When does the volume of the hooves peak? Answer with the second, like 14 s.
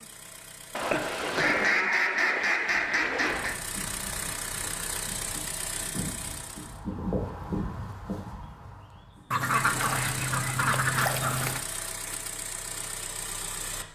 7 s.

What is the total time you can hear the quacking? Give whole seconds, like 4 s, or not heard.
5 s.